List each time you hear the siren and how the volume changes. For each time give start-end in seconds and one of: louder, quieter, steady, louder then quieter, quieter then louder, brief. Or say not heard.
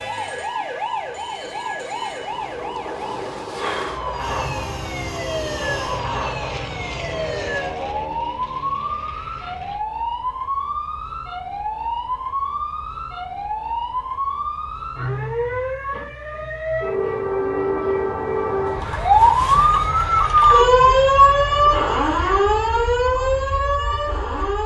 0.0-24.6 louder.